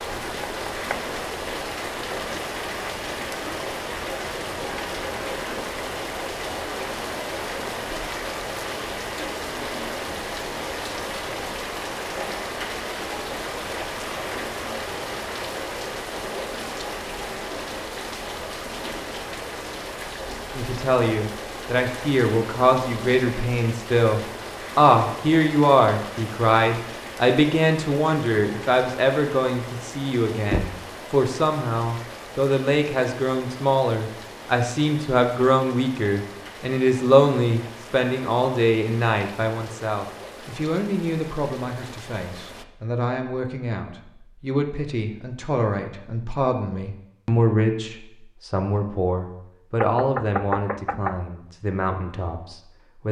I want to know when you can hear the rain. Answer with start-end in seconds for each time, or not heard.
0.0-42.6.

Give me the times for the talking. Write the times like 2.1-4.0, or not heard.
20.5-53.0.